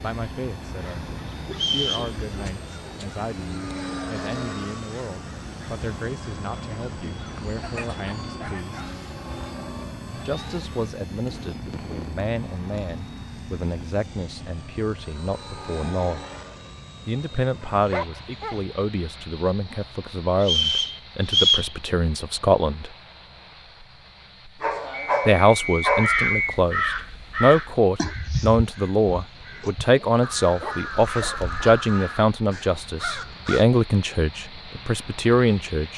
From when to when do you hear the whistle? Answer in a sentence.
You can hear the whistle from 1.5 to 2.1 s, from 20.4 to 21.7 s and from 24.9 to 26.6 s.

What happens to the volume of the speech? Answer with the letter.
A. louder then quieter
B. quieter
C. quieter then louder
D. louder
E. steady
D.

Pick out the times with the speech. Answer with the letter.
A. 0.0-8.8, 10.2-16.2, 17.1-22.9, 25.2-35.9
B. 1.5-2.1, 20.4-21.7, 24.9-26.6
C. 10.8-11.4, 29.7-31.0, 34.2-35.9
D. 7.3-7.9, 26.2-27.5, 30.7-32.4
A.